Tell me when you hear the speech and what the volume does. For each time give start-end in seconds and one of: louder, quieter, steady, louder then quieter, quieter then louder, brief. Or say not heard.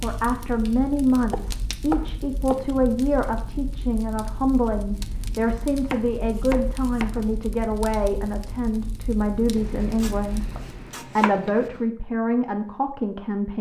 0.0-13.5 steady.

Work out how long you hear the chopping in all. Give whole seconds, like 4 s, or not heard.
5 s.